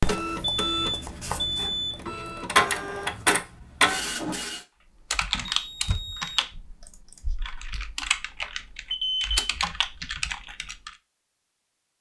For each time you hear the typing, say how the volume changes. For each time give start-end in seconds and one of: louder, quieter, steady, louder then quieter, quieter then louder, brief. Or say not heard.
5.1-10.9 quieter then louder.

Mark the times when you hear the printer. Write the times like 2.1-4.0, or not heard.
0.0-4.6.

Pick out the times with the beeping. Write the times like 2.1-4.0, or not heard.
0.6-2.1, 5.5-6.4, 8.9-9.3.